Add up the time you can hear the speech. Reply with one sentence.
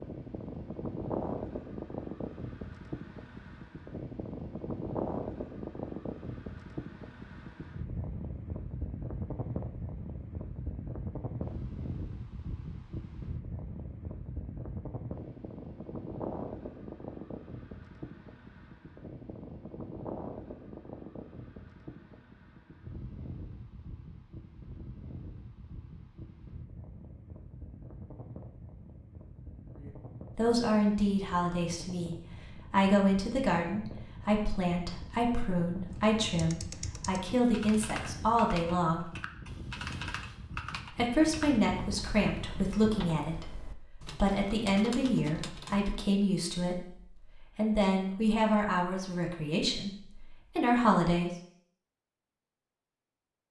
The speech can be heard for 20 seconds in total.